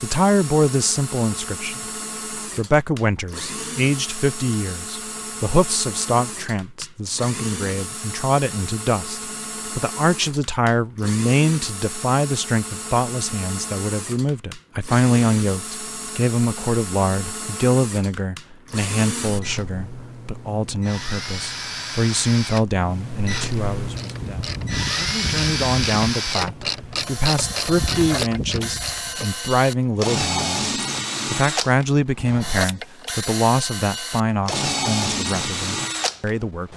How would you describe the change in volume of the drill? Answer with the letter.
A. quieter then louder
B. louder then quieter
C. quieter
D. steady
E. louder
E.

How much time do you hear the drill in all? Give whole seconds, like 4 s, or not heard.
37 s.